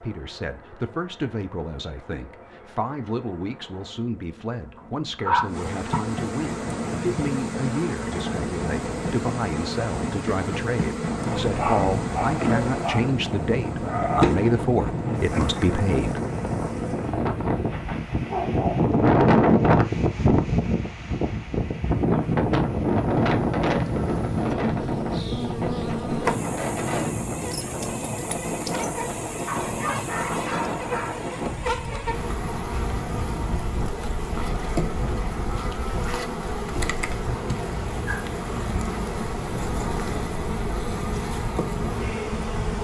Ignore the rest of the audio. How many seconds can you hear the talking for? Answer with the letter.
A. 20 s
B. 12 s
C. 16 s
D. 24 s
C.